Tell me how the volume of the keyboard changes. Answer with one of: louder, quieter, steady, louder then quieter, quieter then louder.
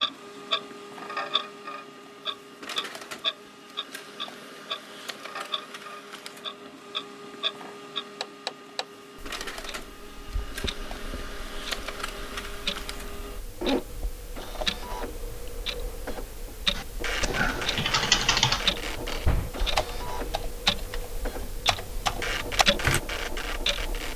quieter then louder.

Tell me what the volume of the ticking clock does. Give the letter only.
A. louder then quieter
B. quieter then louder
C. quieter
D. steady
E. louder
B.